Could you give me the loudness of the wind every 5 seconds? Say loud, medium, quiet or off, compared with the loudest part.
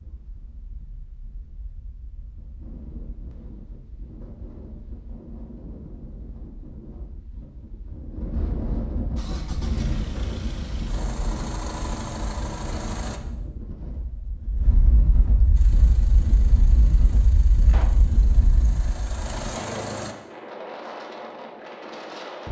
quiet, loud, loud, loud, loud.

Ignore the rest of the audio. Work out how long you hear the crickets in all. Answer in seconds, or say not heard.
not heard.